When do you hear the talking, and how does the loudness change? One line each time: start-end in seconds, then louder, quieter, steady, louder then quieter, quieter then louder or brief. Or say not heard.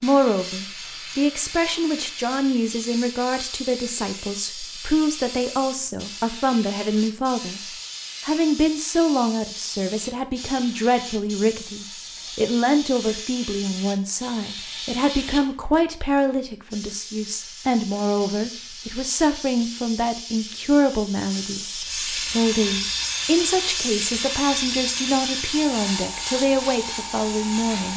0.0-27.9 steady.